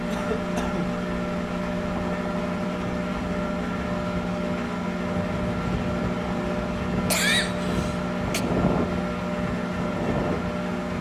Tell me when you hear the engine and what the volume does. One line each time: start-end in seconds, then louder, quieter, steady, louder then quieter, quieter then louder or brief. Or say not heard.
0.0-10.9 steady.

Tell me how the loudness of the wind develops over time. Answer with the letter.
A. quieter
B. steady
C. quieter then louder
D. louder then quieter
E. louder
E.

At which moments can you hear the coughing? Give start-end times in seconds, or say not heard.
0.1-1.0, 7.1-8.4.